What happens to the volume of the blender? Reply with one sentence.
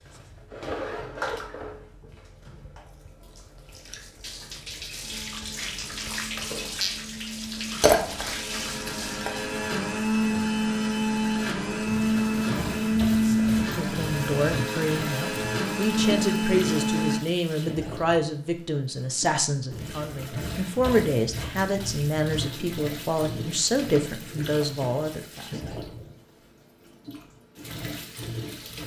The volume of the blender goes up.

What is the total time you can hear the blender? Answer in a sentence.
You can hear the blender for 12 seconds altogether.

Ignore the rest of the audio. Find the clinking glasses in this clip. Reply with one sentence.
You can hear the clinking glasses from 7.8 to 9.3 s.